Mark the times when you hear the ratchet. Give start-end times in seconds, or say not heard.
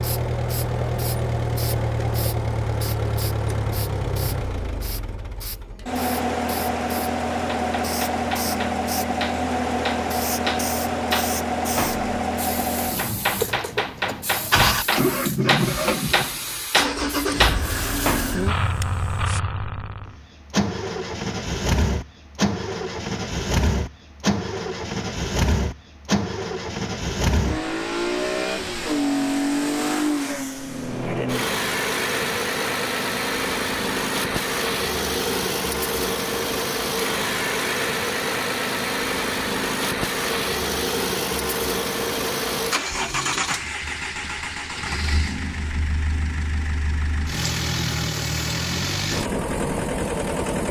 not heard.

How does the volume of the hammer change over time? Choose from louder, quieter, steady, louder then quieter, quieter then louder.
louder.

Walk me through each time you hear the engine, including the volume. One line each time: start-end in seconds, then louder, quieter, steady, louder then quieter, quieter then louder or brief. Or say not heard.
0.0-50.6 steady.